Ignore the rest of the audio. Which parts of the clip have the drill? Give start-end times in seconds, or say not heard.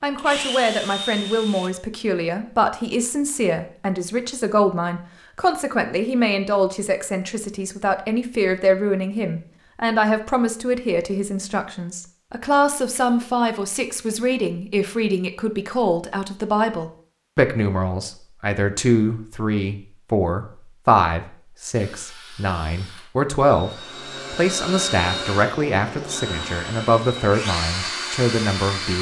0.1-1.7, 21.7-28.9.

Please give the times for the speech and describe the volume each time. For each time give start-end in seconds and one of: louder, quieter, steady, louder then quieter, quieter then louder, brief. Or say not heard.
0.0-28.9 steady.